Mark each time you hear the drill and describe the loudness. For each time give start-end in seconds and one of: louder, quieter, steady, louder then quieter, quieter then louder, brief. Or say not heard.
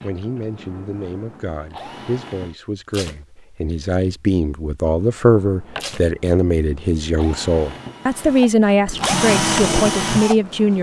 0.0-2.5 brief
5.0-10.7 louder.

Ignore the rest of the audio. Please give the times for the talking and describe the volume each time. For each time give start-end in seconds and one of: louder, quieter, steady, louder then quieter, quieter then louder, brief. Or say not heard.
0.0-10.7 louder.